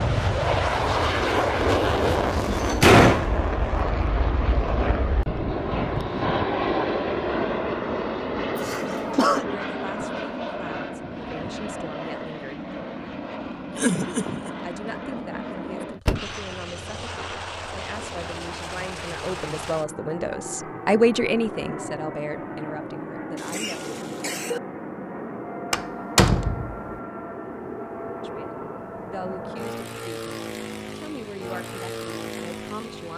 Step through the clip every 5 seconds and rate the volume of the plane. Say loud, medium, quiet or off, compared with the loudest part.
loud, loud, medium, medium, medium, medium, medium.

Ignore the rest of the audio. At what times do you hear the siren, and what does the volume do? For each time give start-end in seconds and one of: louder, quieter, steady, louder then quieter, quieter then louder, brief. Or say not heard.
not heard.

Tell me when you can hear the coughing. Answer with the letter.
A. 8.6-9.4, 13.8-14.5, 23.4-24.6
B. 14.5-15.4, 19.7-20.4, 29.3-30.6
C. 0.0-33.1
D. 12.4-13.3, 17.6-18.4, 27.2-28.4
A.